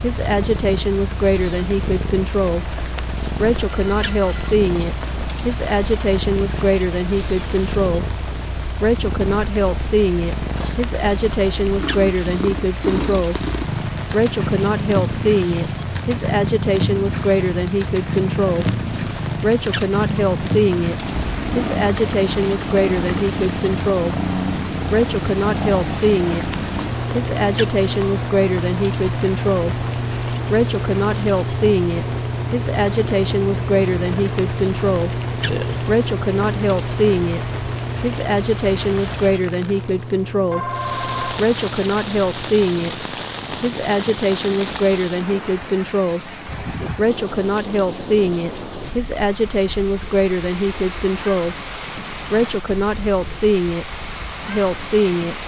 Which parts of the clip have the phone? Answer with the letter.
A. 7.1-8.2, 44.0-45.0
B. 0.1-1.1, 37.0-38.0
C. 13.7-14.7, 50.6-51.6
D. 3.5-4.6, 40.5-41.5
D.